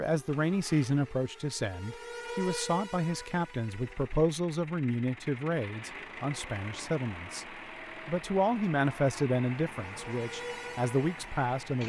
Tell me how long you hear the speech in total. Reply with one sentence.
You can hear the speech for 12 seconds altogether.